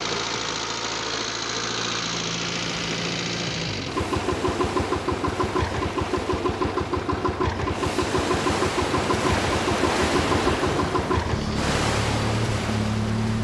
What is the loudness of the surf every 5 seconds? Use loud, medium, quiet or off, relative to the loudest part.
medium, loud, loud.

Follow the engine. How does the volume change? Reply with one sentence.
The loudness of the engine stays about the same.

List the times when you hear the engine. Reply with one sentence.
You can hear the engine from 0.0 to 13.3 s.